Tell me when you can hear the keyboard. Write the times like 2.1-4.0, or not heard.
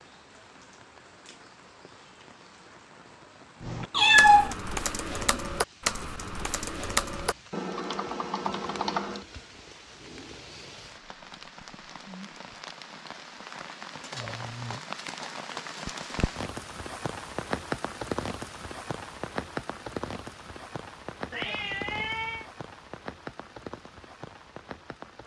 3.6-9.2.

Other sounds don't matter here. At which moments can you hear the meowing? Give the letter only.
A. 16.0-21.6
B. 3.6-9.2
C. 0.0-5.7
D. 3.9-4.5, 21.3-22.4
D.